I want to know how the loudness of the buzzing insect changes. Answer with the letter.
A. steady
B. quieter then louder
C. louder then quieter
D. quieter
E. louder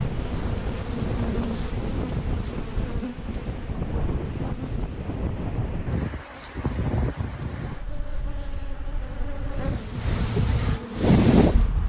B.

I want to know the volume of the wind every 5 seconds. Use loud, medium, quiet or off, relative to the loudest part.
medium, medium, loud.